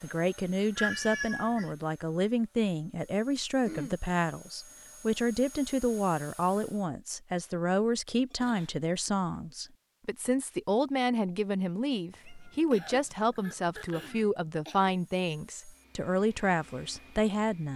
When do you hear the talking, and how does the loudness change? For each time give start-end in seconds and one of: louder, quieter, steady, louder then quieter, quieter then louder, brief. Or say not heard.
0.0-17.7 steady.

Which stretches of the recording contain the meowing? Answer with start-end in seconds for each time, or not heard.
0.8-1.8, 12.1-14.3.